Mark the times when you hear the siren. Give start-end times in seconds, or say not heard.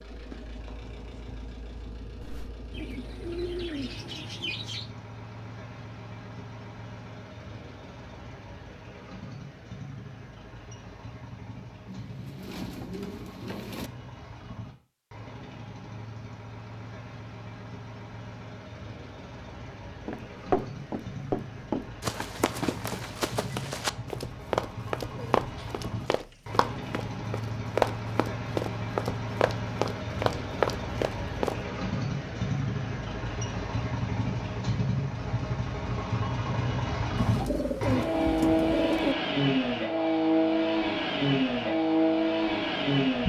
not heard.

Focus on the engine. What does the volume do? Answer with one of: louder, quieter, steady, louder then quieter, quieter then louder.
louder.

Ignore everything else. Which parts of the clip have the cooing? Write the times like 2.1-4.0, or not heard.
2.7-4.9, 11.8-13.9, 25.1-26.4, 37.1-39.1.